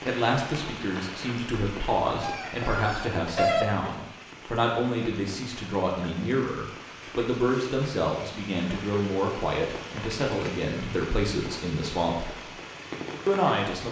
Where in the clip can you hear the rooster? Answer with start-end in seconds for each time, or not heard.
2.2-4.0.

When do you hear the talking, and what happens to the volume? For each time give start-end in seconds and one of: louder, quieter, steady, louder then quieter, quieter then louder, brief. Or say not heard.
0.1-12.3 steady
13.2-13.8 brief.